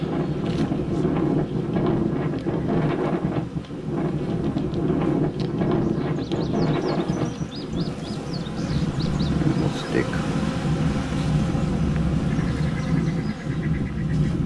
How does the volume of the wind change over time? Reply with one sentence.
The volume of the wind stays about the same.